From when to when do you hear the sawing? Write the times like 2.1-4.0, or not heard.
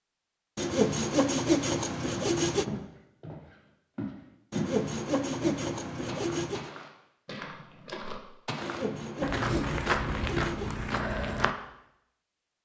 0.6-2.6, 4.5-6.7, 8.6-10.8.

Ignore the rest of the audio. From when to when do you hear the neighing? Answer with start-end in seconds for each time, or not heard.
not heard.